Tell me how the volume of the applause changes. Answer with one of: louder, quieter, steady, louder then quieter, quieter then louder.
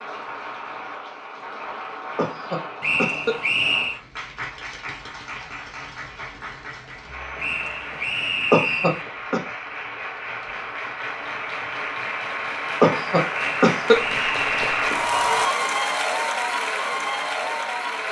louder.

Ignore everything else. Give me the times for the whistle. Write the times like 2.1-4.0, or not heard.
2.8-4.0, 7.3-9.1, 13.3-14.8.